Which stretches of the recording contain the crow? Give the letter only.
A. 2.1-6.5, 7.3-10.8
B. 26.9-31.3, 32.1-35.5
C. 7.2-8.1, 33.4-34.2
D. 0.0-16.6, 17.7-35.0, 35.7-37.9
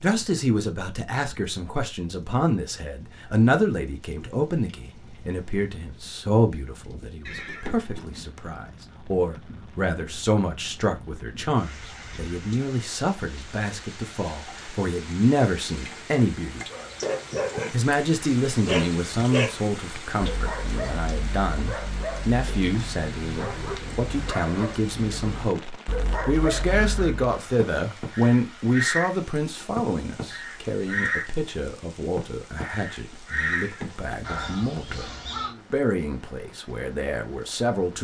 B.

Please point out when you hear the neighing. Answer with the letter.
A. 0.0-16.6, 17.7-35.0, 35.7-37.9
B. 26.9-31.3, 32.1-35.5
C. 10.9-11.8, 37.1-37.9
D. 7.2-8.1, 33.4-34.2
D.